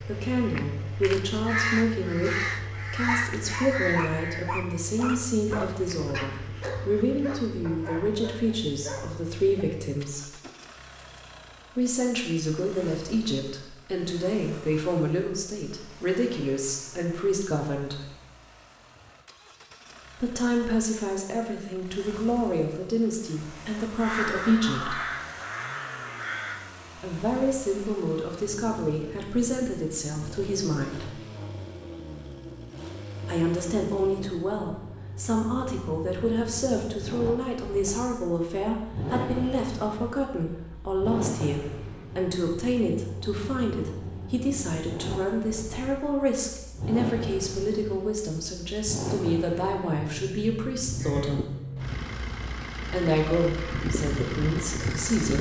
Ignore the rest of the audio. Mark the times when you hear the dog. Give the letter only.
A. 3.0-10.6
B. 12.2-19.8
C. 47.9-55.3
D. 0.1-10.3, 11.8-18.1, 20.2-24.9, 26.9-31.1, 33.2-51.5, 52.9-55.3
A.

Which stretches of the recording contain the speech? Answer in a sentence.
You can hear the speech from 0.1 to 10.3 s, from 11.8 to 18.1 s, from 20.2 to 24.9 s, from 26.9 to 31.1 s, from 33.2 to 51.5 s and from 52.9 to 55.3 s.